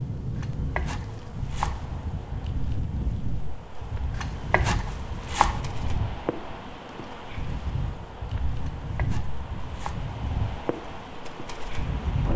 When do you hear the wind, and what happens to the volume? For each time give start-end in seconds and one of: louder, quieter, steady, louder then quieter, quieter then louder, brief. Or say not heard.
0.0-12.3 steady.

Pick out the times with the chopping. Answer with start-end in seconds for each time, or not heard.
0.3-1.9, 4.1-5.7, 8.6-10.1.